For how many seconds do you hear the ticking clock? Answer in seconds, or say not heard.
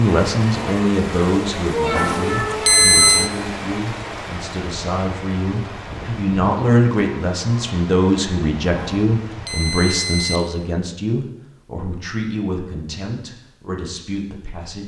not heard.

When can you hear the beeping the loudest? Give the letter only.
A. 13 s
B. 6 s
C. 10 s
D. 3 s
D.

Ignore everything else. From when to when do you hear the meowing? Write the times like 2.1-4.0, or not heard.
1.7-3.4.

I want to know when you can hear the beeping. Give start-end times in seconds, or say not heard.
1.9-3.3, 8.8-10.4.